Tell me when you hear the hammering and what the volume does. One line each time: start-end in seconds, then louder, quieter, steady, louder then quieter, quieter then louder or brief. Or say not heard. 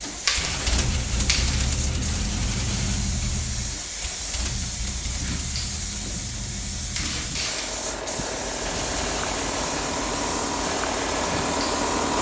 not heard.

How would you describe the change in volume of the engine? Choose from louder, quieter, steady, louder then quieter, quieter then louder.
quieter then louder.